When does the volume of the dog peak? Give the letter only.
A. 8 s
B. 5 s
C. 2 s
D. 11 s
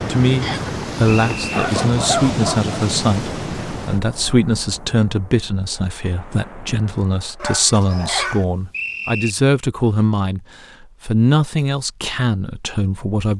C.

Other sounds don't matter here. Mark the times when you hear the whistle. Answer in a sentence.
The whistle can be heard from 0.4 to 1.6 s and from 8.1 to 9.3 s.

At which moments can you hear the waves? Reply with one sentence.
You can hear the waves from 0.0 to 7.6 s.